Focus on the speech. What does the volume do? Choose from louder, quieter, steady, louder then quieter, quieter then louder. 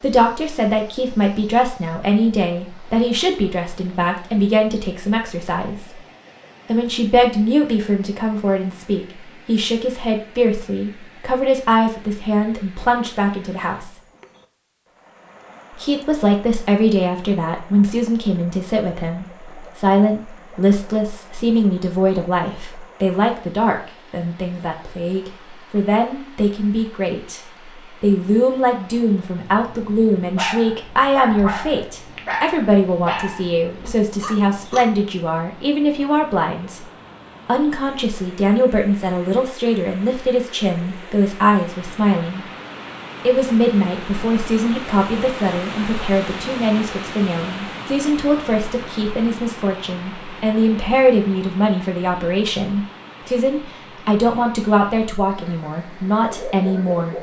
steady.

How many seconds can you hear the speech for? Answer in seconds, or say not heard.
53 s.